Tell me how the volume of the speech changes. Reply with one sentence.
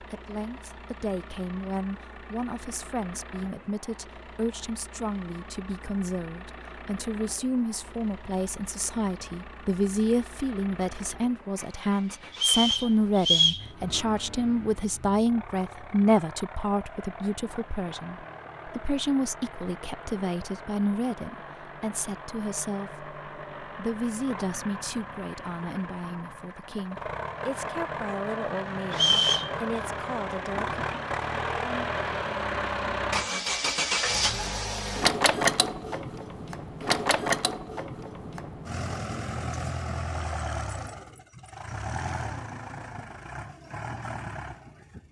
The volume of the speech goes up, then down.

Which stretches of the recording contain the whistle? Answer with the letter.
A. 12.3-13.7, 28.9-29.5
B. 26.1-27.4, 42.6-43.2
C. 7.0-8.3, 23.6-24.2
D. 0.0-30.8
A.